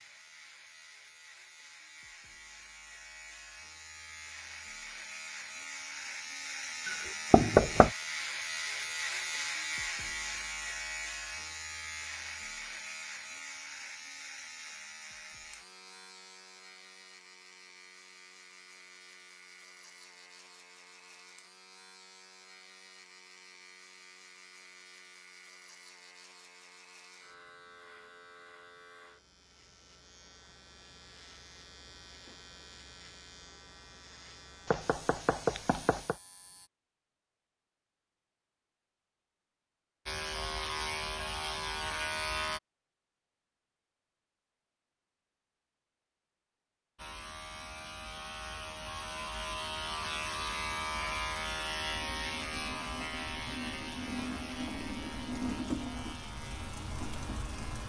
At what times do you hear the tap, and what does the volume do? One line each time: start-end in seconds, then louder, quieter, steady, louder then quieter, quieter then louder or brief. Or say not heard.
51.9-57.8 louder then quieter.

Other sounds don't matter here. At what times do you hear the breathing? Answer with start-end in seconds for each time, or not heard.
not heard.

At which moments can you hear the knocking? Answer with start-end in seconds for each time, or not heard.
6.8-7.9, 34.6-36.1.